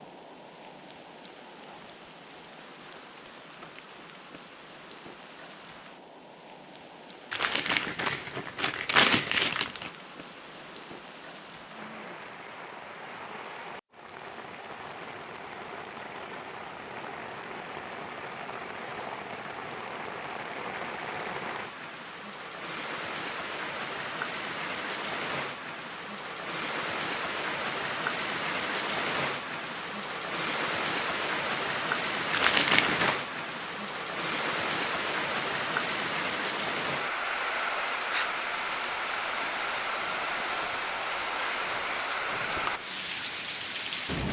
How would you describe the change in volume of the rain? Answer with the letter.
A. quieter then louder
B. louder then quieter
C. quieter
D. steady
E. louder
E.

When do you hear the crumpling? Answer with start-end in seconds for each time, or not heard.
7.3-9.9, 32.3-33.2.